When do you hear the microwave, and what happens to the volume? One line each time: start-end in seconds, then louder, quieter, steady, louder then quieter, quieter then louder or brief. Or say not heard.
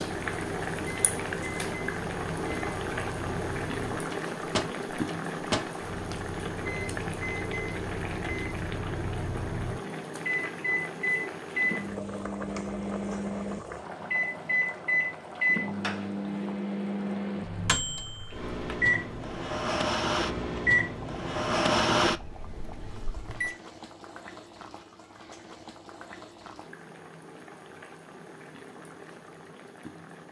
0.2-23.6 louder.